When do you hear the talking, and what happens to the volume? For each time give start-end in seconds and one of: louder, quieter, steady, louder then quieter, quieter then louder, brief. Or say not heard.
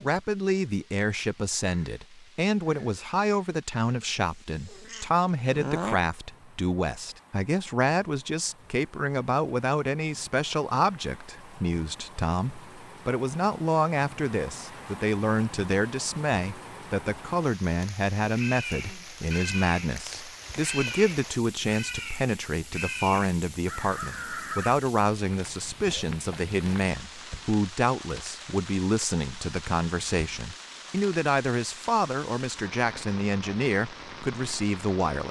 0.0-35.2 steady.